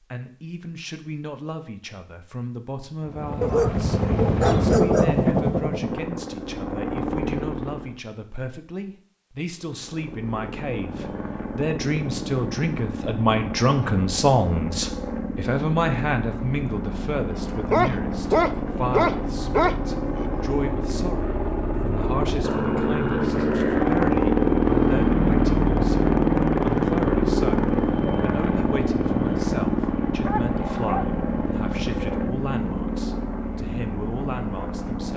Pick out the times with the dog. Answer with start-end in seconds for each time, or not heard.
3.4-5.2, 17.7-20.2, 30.2-31.1.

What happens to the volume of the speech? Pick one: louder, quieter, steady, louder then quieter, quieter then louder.
louder then quieter.